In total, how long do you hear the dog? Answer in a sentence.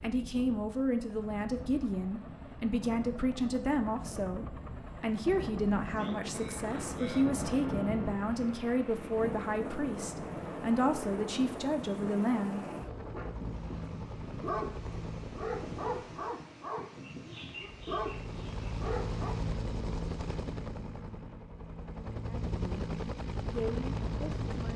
The dog can be heard for 5 seconds in total.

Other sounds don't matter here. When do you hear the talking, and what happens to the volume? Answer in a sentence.
You can hear the talking from 0.0 to 12.6 s, at a steady volume; briefly from 22.2 to 22.9 s; and briefly from 23.5 to 24.7 s.